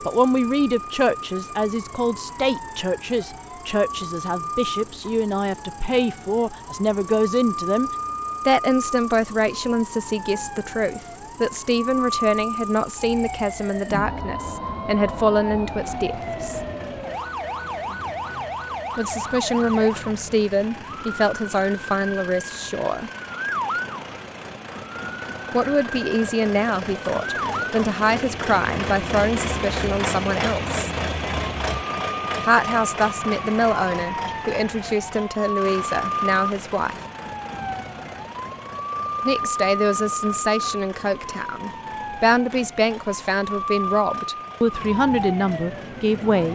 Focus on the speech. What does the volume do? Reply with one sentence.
The volume of the speech stays about the same.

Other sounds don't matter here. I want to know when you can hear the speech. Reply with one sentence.
The speech can be heard from 0.1 to 16.6 s, from 18.9 to 23.1 s, from 25.5 to 30.9 s, from 32.5 to 37.0 s and from 39.2 to 46.5 s.